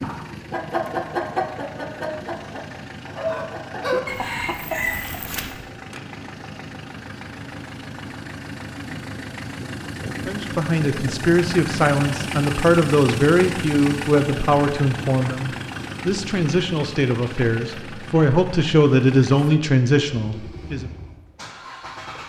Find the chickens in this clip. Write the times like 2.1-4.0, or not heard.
0.0-5.7.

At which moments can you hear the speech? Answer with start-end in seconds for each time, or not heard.
10.2-20.9.